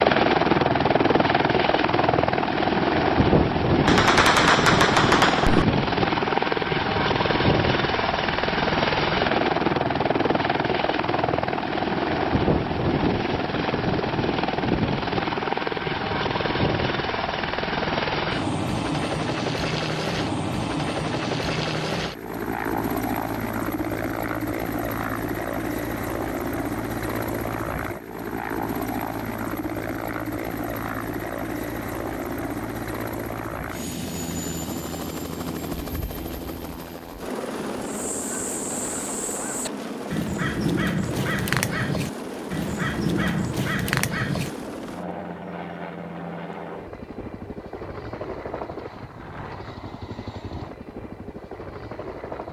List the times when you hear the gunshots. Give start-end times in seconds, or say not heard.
3.9-5.7.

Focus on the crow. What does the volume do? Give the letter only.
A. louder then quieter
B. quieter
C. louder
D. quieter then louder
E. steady
C.